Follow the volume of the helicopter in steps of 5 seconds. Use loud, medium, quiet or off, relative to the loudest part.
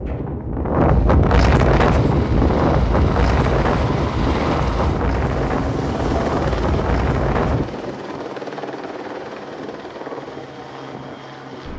loud, loud, medium.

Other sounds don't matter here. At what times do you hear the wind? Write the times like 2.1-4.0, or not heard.
0.0-7.7.